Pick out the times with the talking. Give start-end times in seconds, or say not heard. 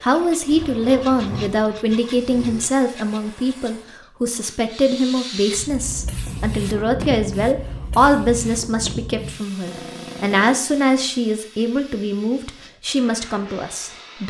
0.0-14.2.